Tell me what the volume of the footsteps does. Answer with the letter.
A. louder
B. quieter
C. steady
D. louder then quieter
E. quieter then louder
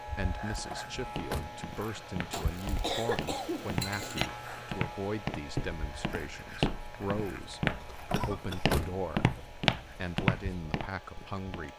A.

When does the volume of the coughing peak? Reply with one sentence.
The volume of the coughing peaks at 3 seconds.